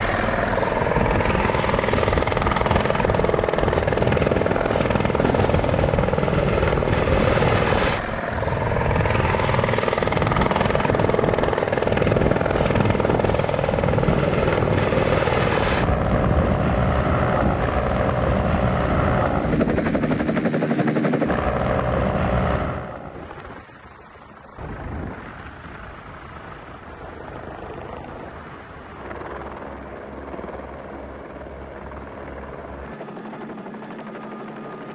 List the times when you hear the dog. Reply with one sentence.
You can't hear the dog here.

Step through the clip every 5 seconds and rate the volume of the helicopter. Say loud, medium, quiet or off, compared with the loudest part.
loud, loud, loud, loud, loud, quiet, quiet.